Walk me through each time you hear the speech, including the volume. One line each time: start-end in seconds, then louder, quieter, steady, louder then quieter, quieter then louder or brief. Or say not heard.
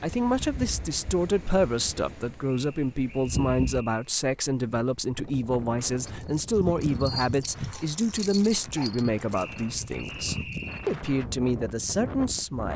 0.0-12.7 steady.